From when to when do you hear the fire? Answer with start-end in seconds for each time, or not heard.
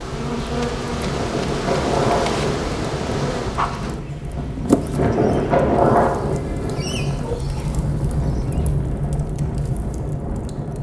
0.0-10.7.